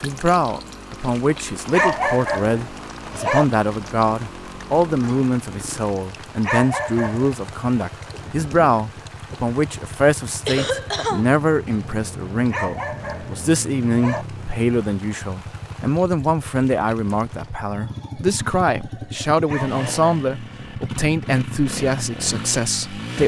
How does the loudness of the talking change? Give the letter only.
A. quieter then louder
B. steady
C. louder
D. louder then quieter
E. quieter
B.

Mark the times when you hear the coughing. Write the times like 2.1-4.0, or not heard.
10.4-11.8.